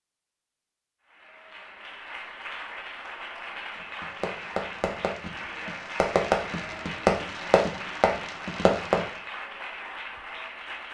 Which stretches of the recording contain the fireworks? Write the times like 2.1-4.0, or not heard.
4.0-9.1.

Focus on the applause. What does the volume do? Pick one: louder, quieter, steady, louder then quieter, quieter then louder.
steady.